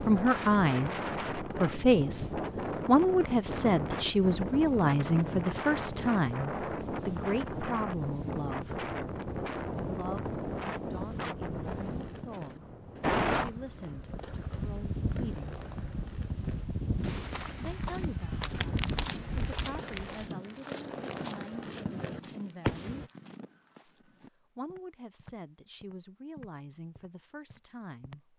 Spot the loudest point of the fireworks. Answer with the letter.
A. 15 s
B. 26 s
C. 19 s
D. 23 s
D.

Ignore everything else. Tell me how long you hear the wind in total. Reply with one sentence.
You can hear the wind for 20 seconds altogether.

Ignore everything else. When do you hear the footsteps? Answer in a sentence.
You can hear the footsteps from 16.9 to 28.2 s.